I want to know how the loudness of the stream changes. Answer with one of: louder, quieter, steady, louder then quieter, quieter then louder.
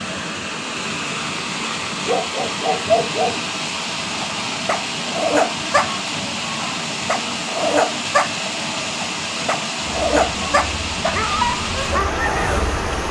steady.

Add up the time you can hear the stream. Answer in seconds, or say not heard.
13 s.